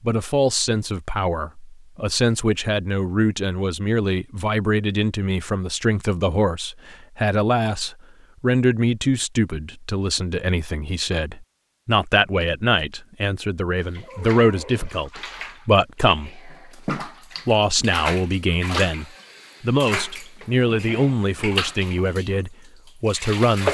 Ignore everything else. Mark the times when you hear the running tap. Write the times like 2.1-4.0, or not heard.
13.8-23.6.